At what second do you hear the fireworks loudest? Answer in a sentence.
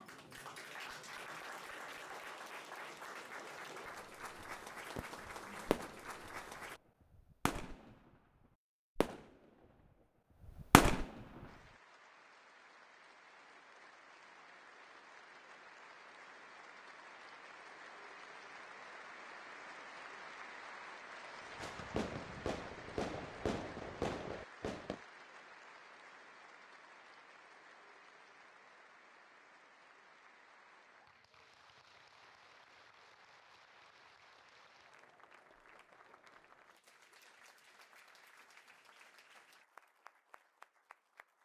The loudest moment of the fireworks is at 11 seconds.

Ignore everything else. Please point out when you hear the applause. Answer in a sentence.
The applause can be heard from 0.0 to 6.8 s and from 11.4 to 41.3 s.